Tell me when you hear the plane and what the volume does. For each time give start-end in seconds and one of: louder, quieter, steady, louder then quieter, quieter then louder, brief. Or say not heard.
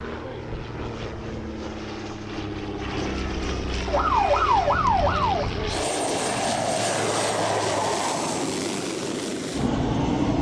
0.0-10.3 louder.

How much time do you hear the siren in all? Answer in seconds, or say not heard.
2 s.